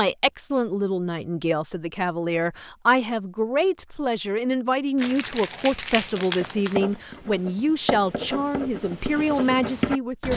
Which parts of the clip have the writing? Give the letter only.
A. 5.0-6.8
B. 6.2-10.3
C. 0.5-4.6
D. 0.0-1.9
B.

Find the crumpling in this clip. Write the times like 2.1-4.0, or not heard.
5.0-6.8.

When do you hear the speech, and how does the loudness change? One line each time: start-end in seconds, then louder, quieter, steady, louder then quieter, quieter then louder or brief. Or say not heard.
0.0-10.3 steady.